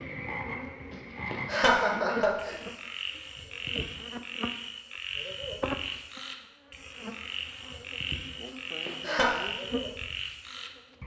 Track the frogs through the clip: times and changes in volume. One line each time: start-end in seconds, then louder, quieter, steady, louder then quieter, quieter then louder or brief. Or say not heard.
0.0-11.0 steady.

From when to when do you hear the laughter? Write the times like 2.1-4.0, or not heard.
1.3-2.5, 8.8-9.3.